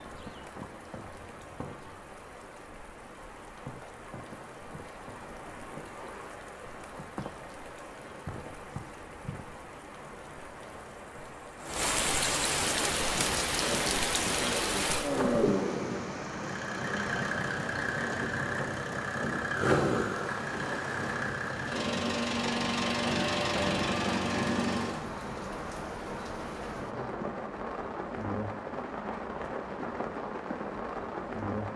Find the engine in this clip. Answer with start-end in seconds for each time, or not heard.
12.6-25.0.